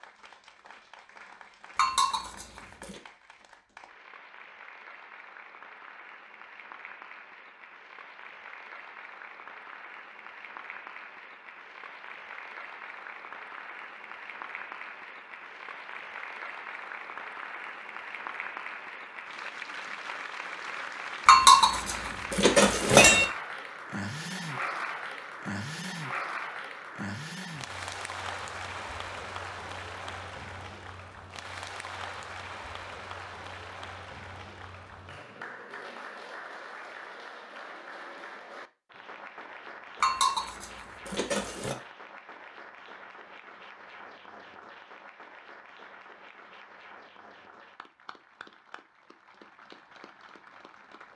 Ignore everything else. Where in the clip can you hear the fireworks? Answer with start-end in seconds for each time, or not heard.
not heard.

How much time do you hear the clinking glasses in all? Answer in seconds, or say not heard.
5 s.